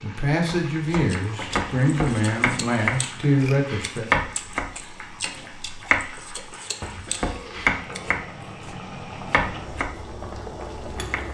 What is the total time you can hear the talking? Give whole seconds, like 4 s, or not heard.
4 s.